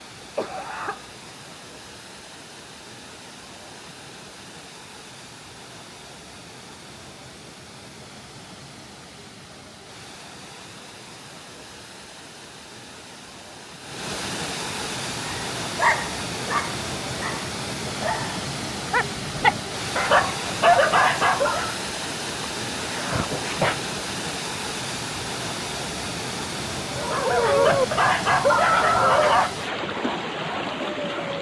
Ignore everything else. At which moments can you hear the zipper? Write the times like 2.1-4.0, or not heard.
not heard.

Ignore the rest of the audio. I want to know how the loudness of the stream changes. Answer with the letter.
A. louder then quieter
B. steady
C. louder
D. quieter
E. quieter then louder
C.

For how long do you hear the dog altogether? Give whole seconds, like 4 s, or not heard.
11 s.